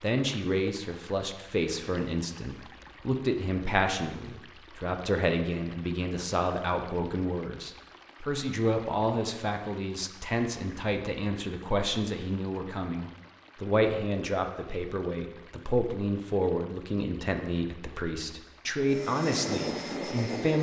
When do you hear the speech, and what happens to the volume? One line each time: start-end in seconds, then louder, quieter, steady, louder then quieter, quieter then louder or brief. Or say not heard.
0.0-20.5 steady.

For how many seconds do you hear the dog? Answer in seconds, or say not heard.
not heard.